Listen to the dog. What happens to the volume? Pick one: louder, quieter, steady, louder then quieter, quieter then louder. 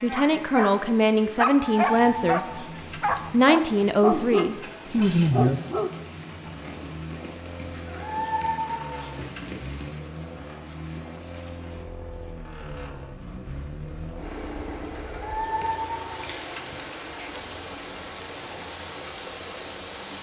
steady.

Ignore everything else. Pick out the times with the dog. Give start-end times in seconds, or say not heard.
0.1-6.5.